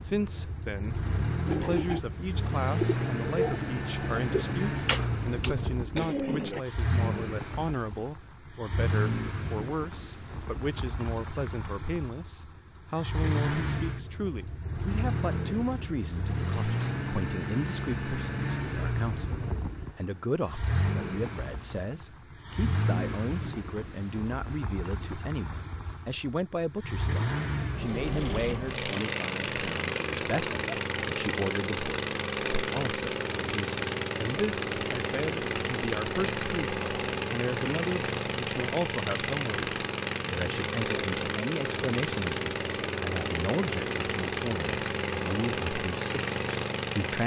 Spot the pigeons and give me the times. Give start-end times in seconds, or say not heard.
1.4-6.6.